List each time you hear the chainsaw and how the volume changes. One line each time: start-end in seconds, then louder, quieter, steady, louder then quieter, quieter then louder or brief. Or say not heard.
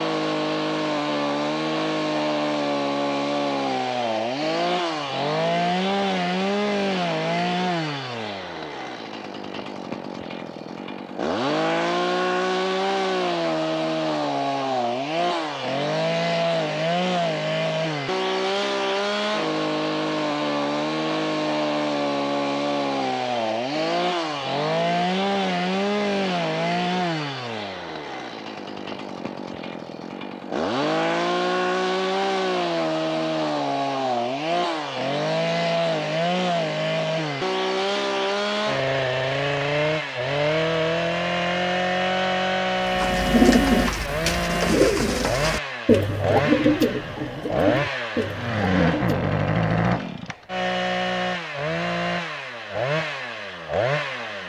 0.0-54.4 steady.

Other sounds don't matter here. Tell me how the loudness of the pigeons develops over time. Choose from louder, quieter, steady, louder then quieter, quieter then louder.
quieter.